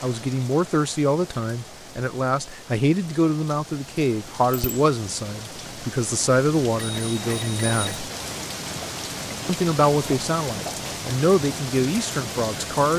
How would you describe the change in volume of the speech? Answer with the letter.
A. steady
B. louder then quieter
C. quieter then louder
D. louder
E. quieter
A.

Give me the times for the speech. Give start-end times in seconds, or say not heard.
0.0-8.1, 9.4-12.9.